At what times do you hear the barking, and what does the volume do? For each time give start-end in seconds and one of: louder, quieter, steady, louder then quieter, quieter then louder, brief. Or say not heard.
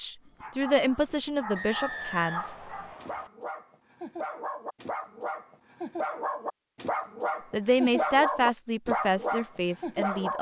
0.2-10.3 louder.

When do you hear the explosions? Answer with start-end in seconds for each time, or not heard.
not heard.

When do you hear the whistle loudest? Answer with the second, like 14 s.
2 s.